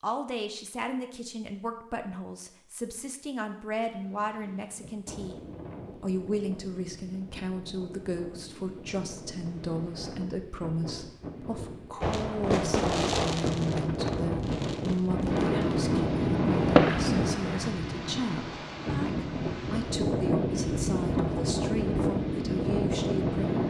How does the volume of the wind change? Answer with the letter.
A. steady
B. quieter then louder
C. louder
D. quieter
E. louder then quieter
C.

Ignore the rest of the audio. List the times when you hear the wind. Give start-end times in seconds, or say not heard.
3.9-23.6.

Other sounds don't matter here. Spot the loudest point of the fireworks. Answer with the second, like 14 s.
17 s.